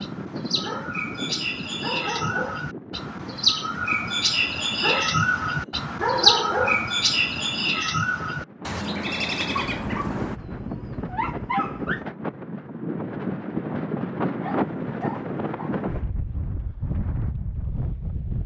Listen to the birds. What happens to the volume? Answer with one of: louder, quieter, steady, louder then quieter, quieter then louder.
louder then quieter.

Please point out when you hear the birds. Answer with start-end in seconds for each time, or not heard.
0.0-10.4.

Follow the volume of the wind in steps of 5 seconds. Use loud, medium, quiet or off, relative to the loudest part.
medium, medium, loud, loud.